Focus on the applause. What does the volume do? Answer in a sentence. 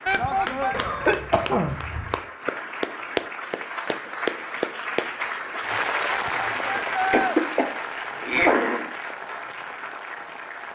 The volume of the applause goes up, then down.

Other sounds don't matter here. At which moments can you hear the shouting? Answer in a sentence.
You can hear the shouting from 0.1 to 0.8 s and from 6.0 to 7.3 s.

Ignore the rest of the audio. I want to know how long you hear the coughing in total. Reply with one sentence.
You can hear the coughing for 3 seconds altogether.